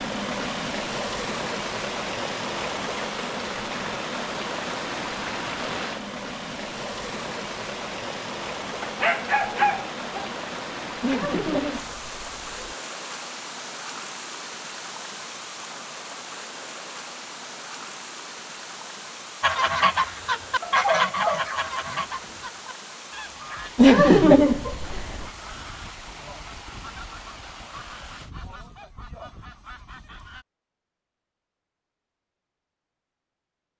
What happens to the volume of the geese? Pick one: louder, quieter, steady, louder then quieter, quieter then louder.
quieter.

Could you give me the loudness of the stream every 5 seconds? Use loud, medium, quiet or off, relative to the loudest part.
loud, loud, medium, medium, medium, quiet, off.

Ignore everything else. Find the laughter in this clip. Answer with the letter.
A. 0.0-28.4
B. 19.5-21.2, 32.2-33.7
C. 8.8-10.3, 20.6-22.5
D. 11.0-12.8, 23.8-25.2
D.